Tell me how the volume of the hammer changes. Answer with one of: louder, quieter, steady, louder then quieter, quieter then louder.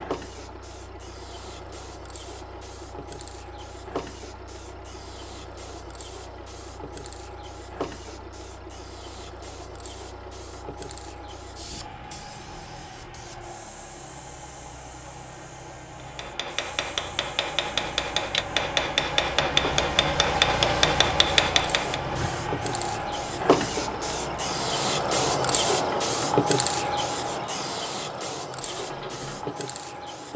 louder.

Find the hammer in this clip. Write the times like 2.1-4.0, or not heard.
16.0-22.0.